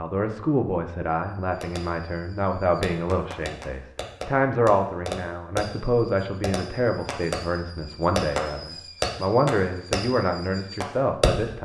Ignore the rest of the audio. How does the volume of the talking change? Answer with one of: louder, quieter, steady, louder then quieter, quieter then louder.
steady.